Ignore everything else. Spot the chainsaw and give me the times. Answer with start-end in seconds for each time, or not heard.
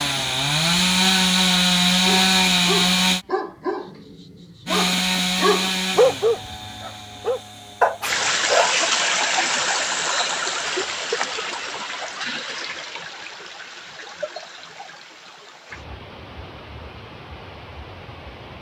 0.0-3.2, 4.7-8.3.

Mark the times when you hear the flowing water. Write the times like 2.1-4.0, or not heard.
8.0-18.5.